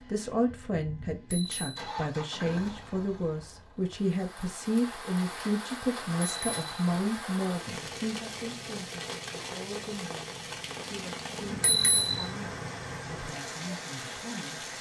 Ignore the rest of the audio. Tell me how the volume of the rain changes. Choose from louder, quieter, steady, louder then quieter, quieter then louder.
steady.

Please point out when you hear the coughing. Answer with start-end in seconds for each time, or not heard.
not heard.